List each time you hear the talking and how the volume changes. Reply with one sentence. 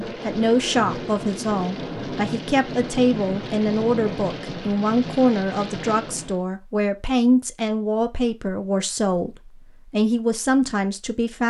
The talking can be heard from 0.0 to 11.4 s, at a steady volume.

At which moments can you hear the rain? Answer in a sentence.
You can hear the rain from 0.0 to 6.5 s.